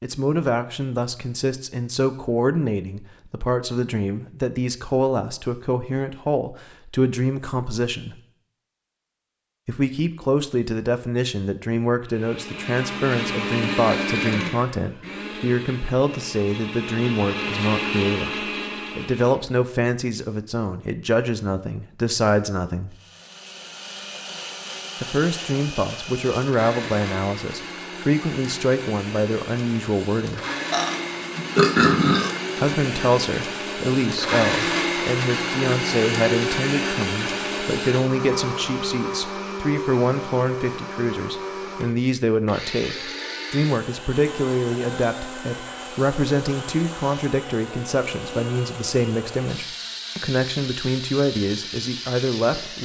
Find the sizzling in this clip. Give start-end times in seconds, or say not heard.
not heard.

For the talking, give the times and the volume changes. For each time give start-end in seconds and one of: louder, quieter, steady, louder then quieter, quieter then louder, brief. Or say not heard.
0.0-8.2 steady
9.7-22.9 steady
25.0-30.4 steady
32.5-52.8 steady.